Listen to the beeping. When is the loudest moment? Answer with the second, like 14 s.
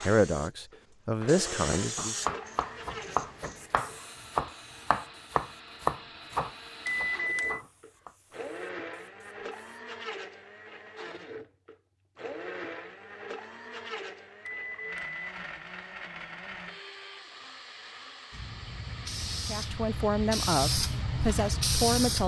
7 s.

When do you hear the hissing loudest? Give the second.
22 s.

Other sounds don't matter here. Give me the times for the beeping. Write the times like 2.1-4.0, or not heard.
6.8-7.6, 14.4-15.2.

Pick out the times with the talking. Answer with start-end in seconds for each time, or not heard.
0.0-2.4, 19.4-22.2.